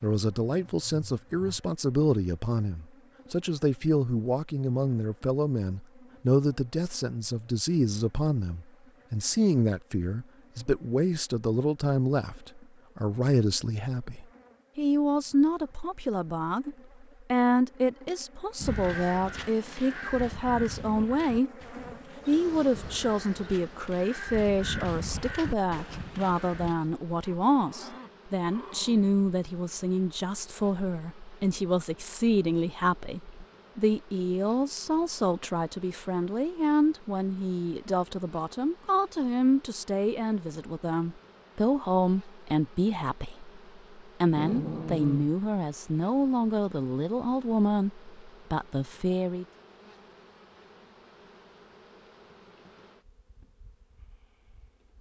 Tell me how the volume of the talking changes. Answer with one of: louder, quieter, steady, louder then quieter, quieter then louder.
steady.